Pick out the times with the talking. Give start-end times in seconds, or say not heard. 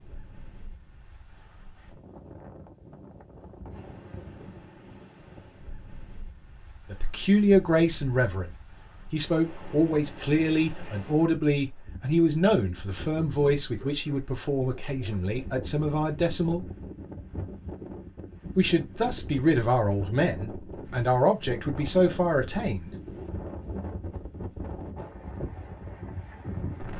6.9-8.5, 9.1-16.6, 18.6-22.9.